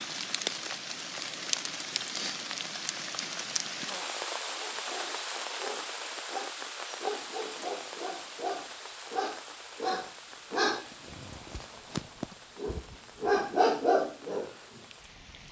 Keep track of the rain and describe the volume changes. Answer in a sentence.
The volume of the rain goes down.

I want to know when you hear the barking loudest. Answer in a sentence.
The loudest moment of the barking is at 14 seconds.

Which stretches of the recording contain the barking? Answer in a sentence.
The barking can be heard from 4.3 to 14.9 s.